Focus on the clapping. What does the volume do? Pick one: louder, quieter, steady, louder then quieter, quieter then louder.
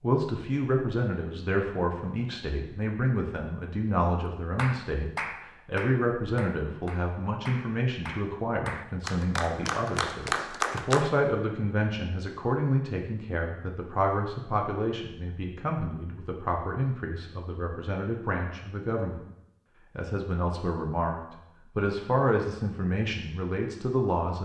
quieter then louder.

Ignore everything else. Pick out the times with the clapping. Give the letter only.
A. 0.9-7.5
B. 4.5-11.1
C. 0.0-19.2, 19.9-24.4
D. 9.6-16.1
B.